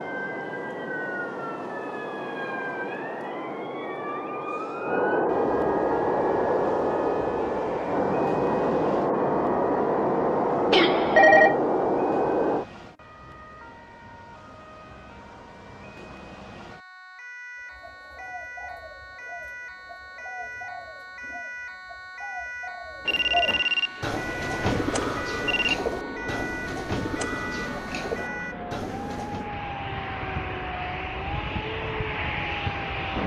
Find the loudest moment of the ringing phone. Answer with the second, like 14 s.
11 s.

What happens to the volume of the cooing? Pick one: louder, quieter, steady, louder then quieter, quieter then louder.
louder.